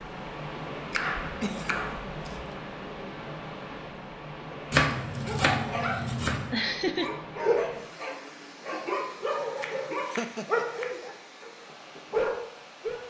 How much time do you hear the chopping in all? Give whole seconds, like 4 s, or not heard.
5 s.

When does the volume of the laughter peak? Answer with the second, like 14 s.
7 s.